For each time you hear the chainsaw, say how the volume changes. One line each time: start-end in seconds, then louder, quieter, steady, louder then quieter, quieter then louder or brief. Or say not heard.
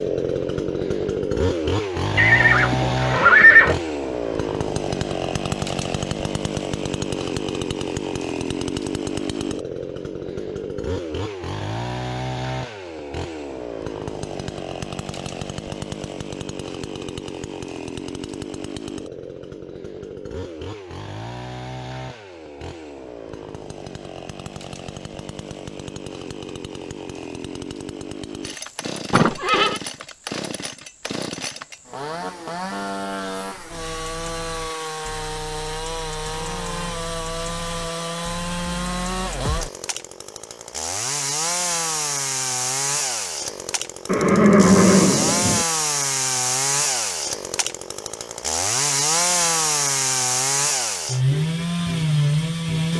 0.0-52.9 quieter then louder.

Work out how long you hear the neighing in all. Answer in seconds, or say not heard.
4 s.